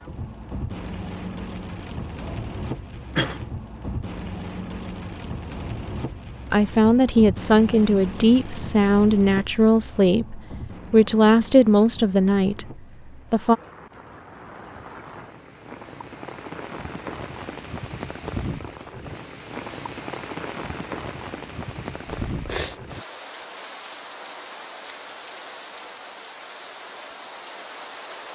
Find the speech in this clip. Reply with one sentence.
You can hear the speech from 6.5 to 13.6 s.